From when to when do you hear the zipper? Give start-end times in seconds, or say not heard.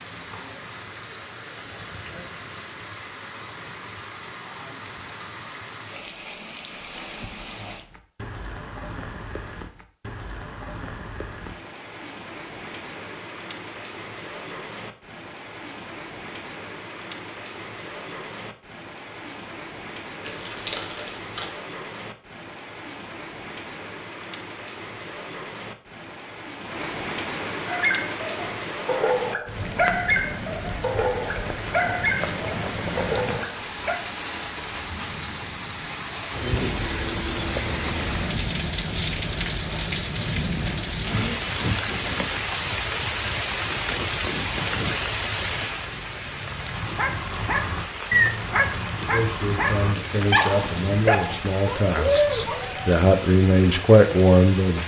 not heard.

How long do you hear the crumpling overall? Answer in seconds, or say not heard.
2 s.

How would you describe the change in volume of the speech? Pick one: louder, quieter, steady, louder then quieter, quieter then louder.
louder.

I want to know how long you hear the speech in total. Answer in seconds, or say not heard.
6 s.